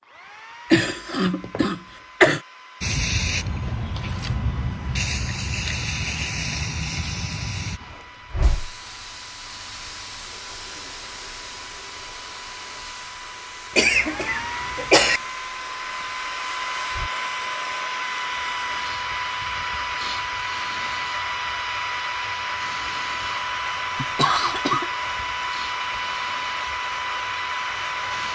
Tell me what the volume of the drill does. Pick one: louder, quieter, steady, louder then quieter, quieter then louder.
louder.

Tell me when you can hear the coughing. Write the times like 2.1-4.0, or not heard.
0.7-2.4, 13.8-15.2, 23.9-24.9.